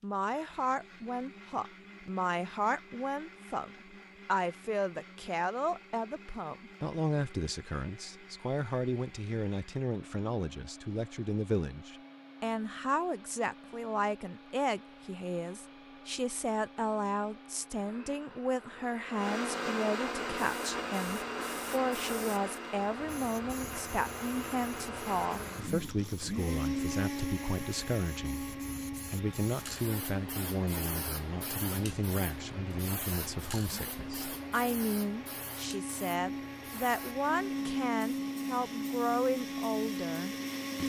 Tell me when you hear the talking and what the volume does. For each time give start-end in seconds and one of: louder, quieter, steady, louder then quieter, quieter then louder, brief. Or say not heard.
0.0-40.8 steady.